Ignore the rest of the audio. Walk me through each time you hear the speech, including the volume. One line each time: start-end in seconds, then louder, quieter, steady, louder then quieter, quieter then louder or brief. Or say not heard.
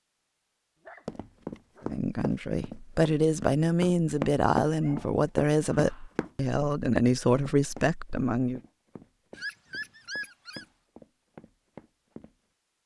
1.9-8.6 steady.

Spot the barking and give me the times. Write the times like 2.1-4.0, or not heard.
0.8-1.9, 4.8-6.2, 9.3-10.7.